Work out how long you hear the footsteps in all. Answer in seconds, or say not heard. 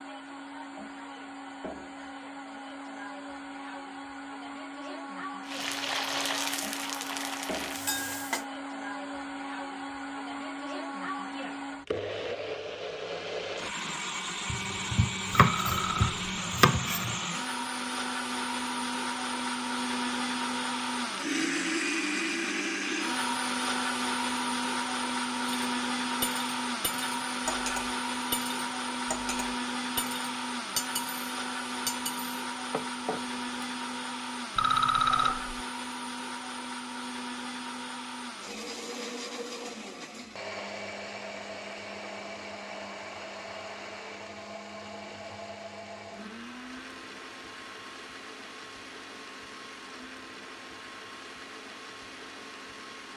not heard.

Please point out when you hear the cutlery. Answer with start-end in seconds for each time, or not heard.
25.4-33.4.